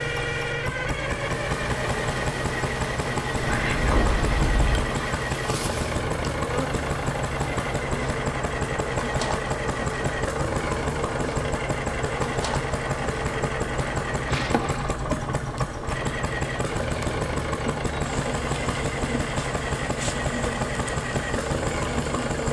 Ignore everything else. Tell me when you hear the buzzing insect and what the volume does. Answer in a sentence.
The buzzing insect can be heard from 0.0 to 22.4 s, at a steady volume.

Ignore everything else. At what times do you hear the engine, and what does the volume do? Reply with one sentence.
You can hear the engine from 0.0 to 22.4 s, at a steady volume.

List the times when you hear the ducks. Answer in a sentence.
The ducks can be heard from 3.4 to 5.0 s.